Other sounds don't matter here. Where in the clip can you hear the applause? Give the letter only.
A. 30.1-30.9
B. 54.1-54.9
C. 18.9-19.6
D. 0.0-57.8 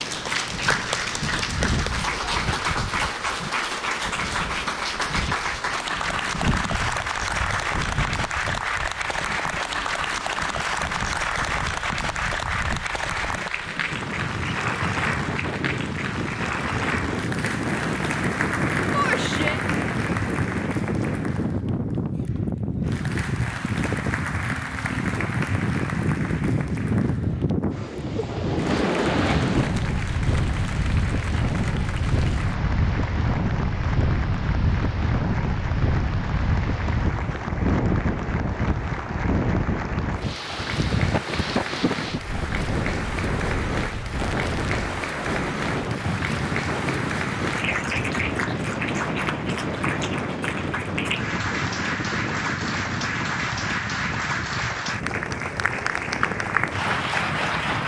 D.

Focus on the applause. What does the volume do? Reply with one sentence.
The volume of the applause goes down, then up.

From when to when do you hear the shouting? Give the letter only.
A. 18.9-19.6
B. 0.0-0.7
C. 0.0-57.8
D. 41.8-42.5
A.